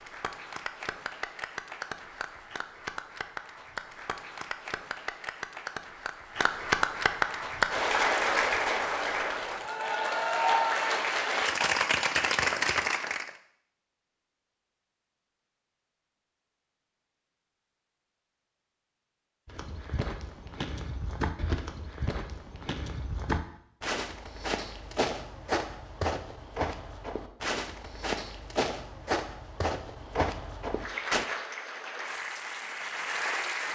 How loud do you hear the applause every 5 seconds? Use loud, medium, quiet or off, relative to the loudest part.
quiet, loud, loud, off, off, off, medium.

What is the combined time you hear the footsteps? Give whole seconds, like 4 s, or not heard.
12 s.